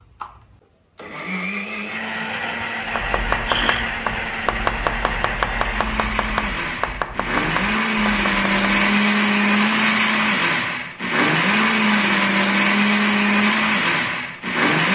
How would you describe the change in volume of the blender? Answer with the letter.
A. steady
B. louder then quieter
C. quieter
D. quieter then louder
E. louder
E.